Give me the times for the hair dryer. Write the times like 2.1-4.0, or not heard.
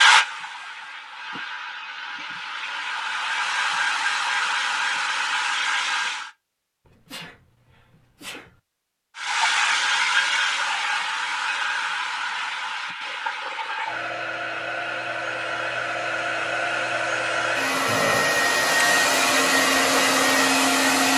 0.0-6.3, 9.2-21.1.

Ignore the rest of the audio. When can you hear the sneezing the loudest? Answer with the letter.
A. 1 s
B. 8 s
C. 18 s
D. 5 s
C.